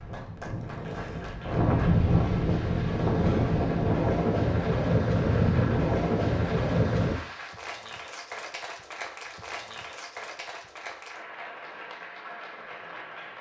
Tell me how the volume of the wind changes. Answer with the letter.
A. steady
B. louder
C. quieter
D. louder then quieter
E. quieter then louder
B.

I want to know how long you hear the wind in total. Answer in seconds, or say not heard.
7 s.